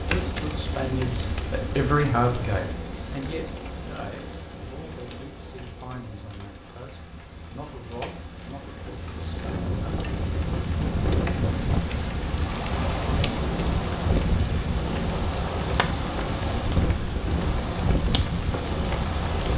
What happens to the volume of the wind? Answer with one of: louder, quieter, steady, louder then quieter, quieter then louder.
steady.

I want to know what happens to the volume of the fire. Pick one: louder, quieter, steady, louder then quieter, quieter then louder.
quieter then louder.